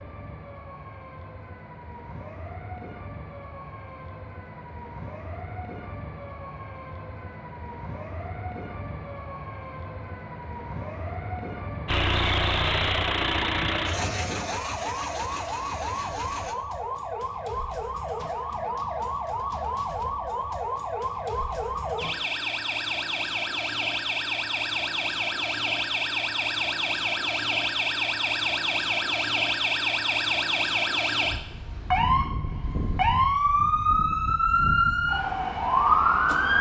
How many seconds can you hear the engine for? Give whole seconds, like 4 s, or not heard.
5 s.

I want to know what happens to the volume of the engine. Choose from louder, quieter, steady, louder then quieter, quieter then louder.
quieter.